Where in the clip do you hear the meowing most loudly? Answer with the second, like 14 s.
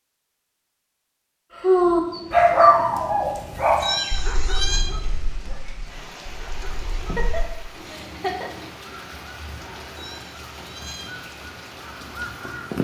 4 s.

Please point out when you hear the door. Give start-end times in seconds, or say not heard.
not heard.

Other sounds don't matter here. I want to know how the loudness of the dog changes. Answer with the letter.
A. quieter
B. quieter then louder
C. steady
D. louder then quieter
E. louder
A.